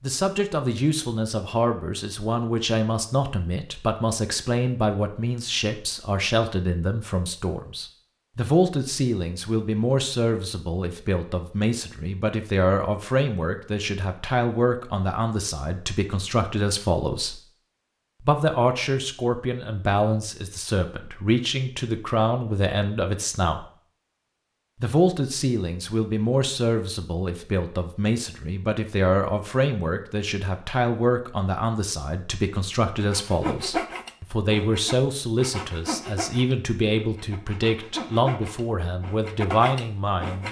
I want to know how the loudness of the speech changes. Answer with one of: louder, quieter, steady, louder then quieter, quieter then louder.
steady.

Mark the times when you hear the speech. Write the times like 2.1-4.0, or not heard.
0.0-17.4, 18.2-23.6, 24.8-40.4.